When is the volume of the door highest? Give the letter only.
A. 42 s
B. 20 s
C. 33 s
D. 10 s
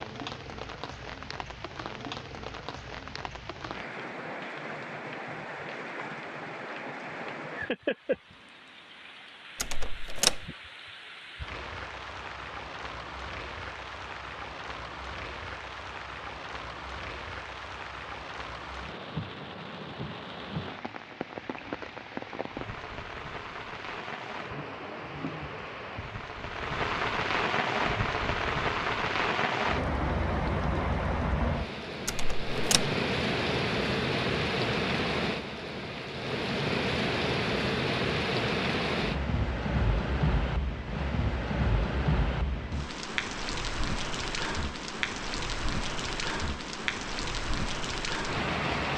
D.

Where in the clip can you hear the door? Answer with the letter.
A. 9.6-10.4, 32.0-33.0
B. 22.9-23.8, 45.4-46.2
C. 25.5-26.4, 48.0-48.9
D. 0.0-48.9
A.